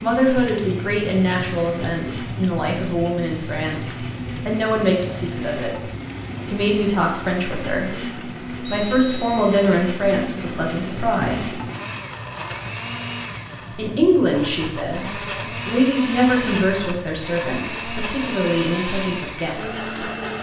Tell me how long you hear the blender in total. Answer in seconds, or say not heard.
20 s.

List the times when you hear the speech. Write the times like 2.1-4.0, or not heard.
0.0-5.8, 6.5-11.6, 13.8-20.1.